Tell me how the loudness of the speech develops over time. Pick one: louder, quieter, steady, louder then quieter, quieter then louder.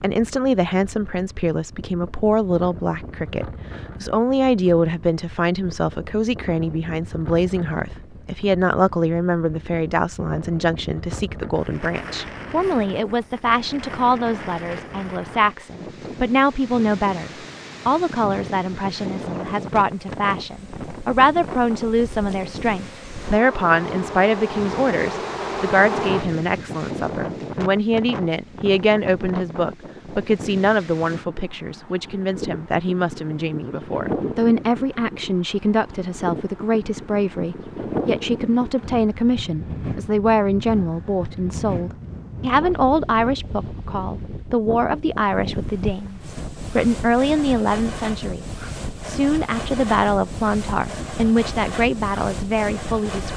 steady.